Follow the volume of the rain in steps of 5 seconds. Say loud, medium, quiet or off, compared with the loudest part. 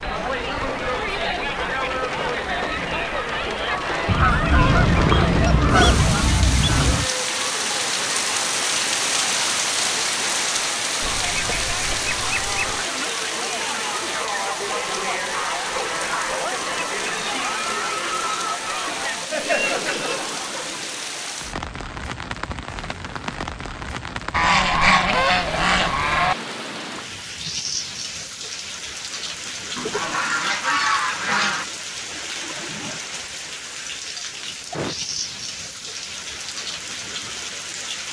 medium, loud, loud, medium, medium, medium, medium, medium.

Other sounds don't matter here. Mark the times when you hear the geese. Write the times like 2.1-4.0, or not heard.
4.0-7.1, 11.0-12.9, 24.3-26.4, 29.8-31.6.